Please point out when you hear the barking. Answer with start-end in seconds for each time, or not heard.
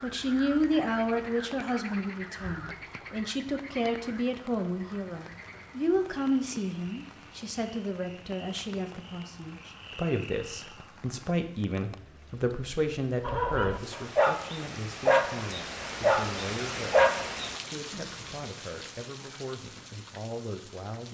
13.2-18.5.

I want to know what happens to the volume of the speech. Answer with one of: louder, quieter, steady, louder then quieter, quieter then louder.
quieter.